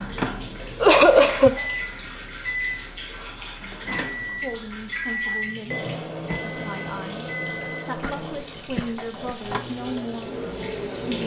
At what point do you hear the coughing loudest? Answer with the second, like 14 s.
1 s.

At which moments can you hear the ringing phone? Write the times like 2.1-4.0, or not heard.
6.3-8.0.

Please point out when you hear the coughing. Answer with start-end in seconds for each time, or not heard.
0.8-1.6, 8.0-9.4.